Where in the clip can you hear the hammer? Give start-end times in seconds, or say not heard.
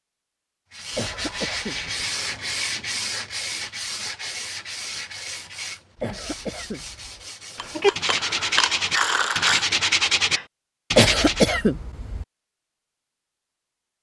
not heard.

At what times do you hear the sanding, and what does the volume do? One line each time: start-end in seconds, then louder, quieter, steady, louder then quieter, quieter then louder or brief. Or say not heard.
0.7-11.6 quieter then louder.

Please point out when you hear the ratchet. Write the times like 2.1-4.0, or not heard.
7.5-9.7.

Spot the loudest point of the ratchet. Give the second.
9 s.